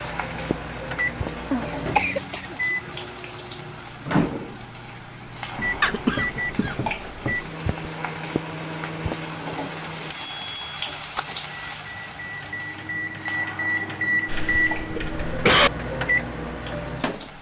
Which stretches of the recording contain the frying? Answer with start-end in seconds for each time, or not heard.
0.0-17.3.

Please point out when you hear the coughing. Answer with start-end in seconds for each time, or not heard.
1.5-2.4, 5.8-6.8, 14.2-15.7.